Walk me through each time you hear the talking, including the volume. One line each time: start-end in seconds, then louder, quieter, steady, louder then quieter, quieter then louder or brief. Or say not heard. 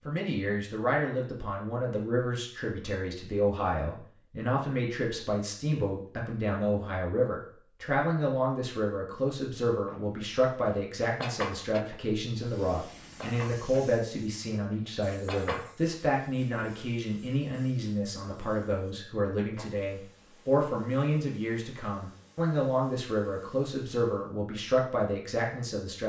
0.1-26.0 steady.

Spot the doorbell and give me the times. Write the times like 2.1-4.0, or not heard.
not heard.